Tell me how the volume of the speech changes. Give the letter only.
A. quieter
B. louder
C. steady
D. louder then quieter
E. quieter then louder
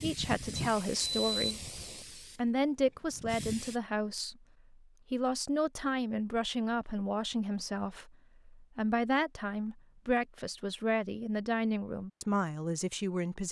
C.